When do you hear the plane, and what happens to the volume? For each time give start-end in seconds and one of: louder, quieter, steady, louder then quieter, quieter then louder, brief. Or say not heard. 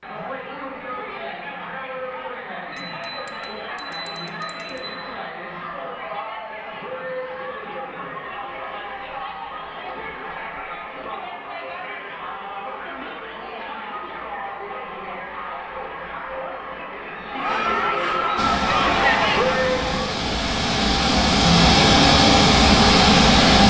18.4-23.6 louder.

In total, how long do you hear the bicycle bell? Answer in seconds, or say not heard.
2 s.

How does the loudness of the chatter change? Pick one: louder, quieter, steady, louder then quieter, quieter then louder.
louder.